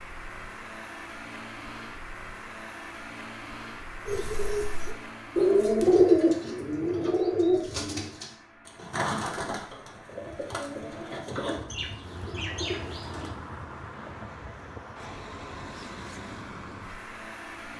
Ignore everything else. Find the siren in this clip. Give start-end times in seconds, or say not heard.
not heard.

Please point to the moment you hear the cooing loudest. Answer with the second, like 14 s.
6 s.